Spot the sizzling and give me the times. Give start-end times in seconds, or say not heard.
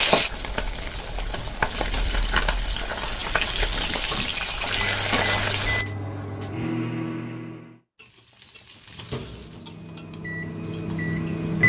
0.0-5.8, 8.0-11.6.